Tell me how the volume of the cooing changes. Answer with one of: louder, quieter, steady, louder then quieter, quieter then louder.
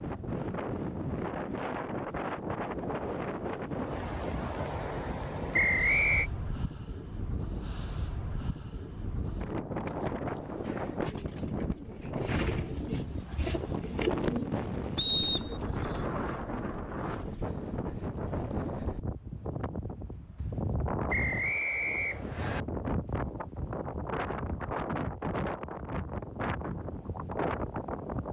louder then quieter.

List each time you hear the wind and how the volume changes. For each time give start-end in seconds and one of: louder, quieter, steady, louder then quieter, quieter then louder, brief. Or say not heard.
0.0-28.2 steady.